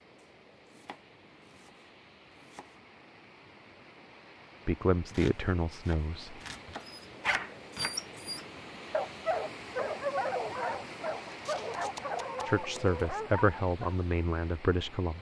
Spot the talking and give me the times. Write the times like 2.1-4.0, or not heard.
4.7-6.4, 12.4-15.1.